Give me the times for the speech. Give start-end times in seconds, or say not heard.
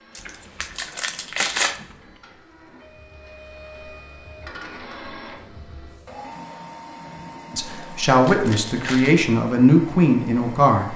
7.5-10.9.